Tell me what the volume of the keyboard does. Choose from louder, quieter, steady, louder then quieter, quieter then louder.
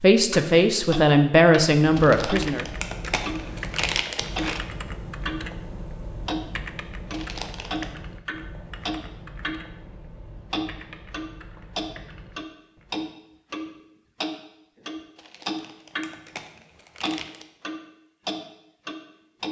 quieter.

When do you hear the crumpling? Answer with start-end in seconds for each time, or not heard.
1.9-4.7, 7.1-8.0, 15.2-17.4.